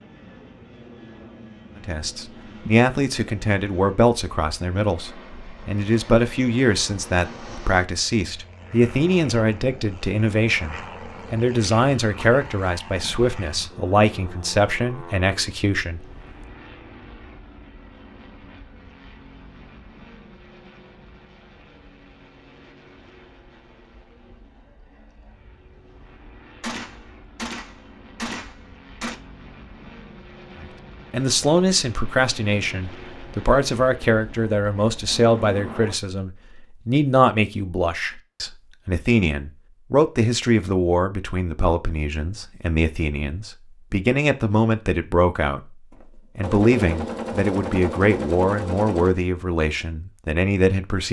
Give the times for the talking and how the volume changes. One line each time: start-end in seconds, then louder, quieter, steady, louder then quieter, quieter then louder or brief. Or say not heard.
1.8-16.1 steady
30.6-51.0 steady.